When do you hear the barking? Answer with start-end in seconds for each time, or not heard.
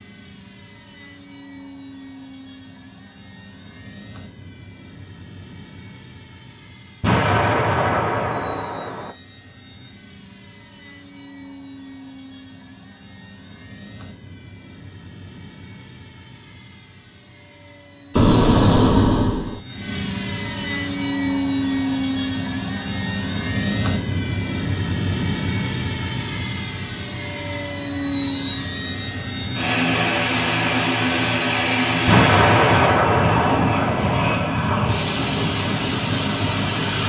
not heard.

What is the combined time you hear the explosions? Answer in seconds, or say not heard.
6 s.